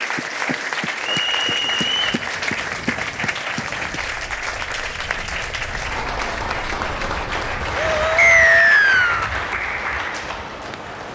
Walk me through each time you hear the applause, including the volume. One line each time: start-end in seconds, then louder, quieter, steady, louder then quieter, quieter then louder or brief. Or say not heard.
0.0-11.1 steady.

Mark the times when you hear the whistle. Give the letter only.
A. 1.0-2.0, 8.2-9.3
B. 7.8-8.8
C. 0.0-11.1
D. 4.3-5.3
A.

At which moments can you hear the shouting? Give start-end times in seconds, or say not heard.
7.8-8.8.